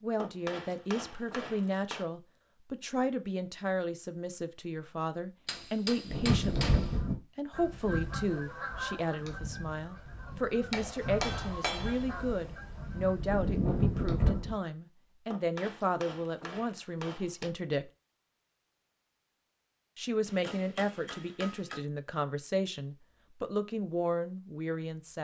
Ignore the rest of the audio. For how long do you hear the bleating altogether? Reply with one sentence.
The bleating can't be heard in this clip.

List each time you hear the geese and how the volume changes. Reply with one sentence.
The geese can be heard from 6.0 to 14.6 s, getting quieter then louder.